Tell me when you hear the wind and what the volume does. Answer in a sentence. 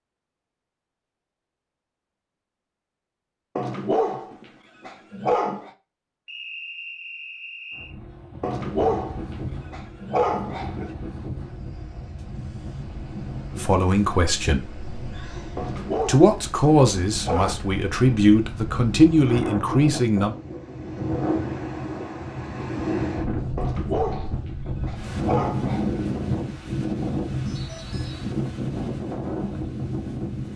You can hear the wind from 7.7 to 30.5 s, getting louder.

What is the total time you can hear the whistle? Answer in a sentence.
You can hear the whistle for 2 seconds altogether.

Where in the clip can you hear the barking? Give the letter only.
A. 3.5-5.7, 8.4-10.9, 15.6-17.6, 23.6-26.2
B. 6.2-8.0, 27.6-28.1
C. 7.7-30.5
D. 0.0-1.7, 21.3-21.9
A.